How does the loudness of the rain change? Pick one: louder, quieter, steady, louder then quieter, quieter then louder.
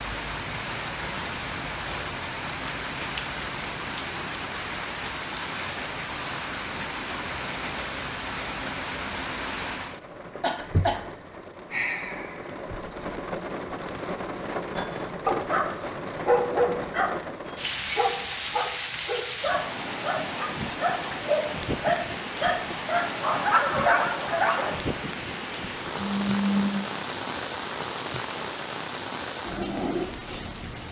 steady.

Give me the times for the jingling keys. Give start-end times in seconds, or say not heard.
17.6-18.5.